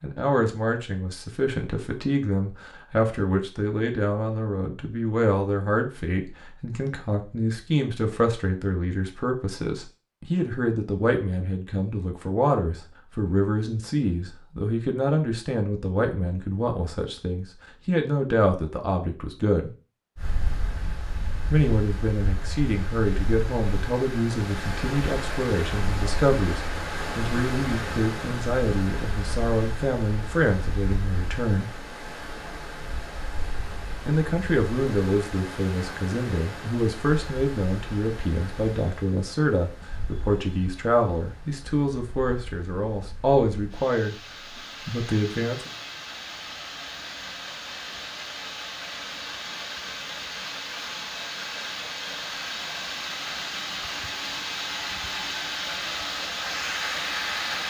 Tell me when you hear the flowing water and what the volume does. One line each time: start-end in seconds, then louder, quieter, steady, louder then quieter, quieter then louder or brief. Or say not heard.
20.1-57.6 quieter then louder.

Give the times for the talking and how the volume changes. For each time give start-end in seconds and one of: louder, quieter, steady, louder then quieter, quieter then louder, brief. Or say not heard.
0.0-19.7 steady
21.5-31.7 steady
34.0-44.1 steady
44.9-45.7 brief.